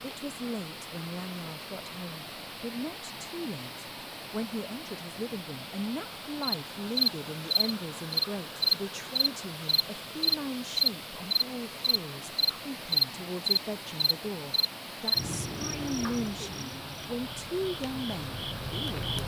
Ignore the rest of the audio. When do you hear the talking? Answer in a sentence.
You can hear the talking from 0.0 to 19.1 s.